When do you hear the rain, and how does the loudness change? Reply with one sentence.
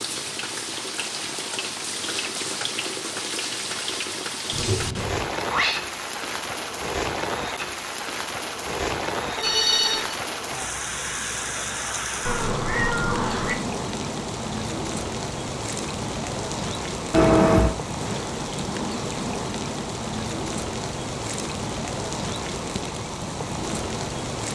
The rain can be heard from 0.0 to 24.5 s, at a steady volume.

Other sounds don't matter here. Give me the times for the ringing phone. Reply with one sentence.
You can hear the ringing phone from 9.3 to 10.2 s.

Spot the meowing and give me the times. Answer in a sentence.
The meowing can be heard from 4.5 to 5.8 s, from 12.2 to 13.6 s and from 17.1 to 17.8 s.